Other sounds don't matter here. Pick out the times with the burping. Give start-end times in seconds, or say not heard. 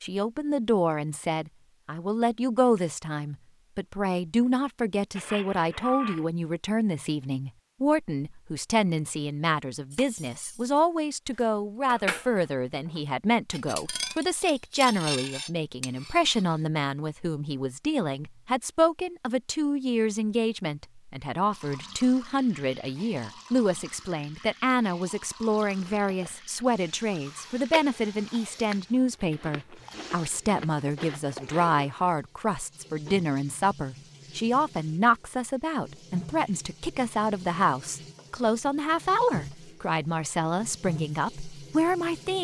5.2-6.2.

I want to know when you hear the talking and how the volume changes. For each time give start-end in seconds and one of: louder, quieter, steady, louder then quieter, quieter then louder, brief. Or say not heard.
0.0-42.4 steady.